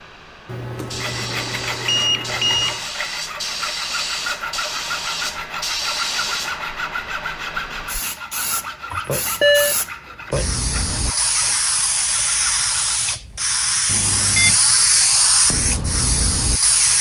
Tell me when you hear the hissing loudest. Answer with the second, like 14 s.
15 s.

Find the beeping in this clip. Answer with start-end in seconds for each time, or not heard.
0.5-2.8, 8.9-9.8, 13.8-14.6.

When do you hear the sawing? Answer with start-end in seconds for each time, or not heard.
0.9-13.0.